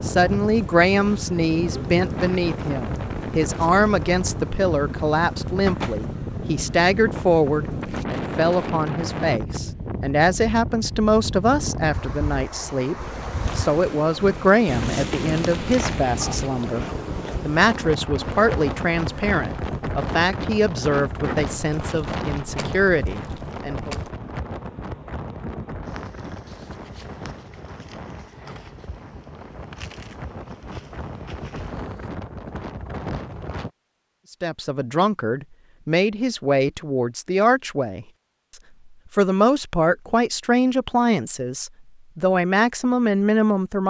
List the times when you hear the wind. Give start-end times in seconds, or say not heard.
0.0-33.7.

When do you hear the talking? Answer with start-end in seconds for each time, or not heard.
0.0-24.0, 34.4-38.0, 39.1-43.8.